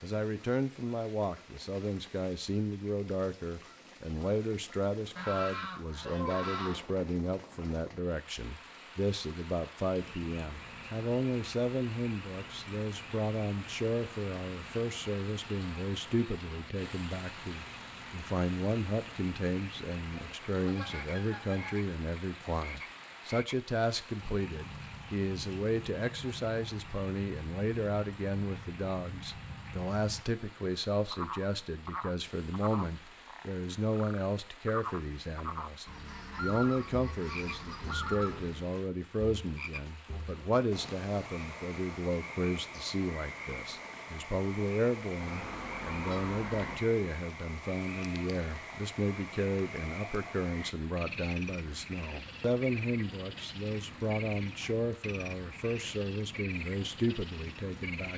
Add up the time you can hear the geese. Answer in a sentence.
The geese can be heard for 8 seconds in total.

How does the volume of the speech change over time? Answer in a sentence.
The volume of the speech stays about the same.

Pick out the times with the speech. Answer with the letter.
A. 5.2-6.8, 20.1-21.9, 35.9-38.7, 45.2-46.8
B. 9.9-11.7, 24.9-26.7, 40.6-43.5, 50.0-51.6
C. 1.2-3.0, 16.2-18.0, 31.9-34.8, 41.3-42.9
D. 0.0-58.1
D.